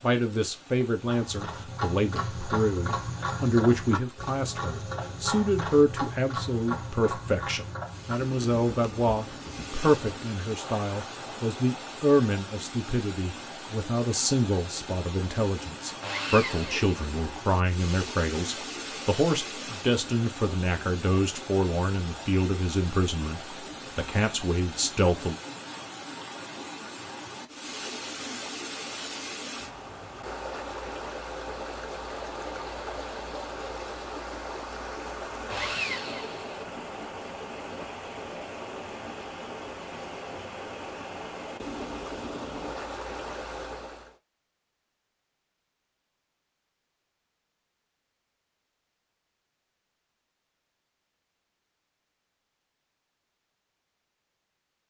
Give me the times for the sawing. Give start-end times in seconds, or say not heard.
16.0-16.9, 35.5-36.6.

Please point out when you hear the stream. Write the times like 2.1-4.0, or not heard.
0.0-44.1.